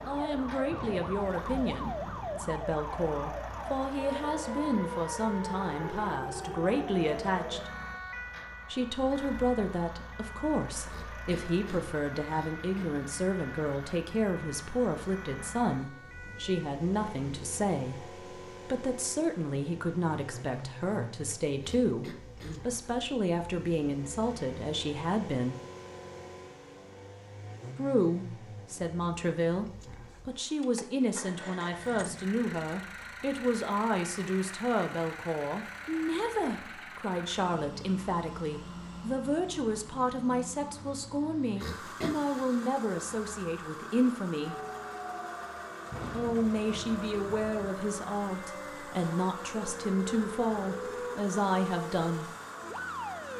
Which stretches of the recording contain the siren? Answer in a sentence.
The siren can be heard from 0.0 to 16.7 s and from 44.4 to 53.3 s.